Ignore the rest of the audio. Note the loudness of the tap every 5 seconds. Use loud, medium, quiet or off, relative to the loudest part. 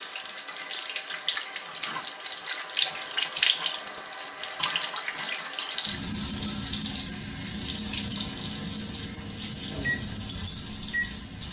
loud, loud, medium.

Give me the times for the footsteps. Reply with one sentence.
You can't hear the footsteps here.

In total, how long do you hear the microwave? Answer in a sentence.
The microwave can be heard for 4 seconds in total.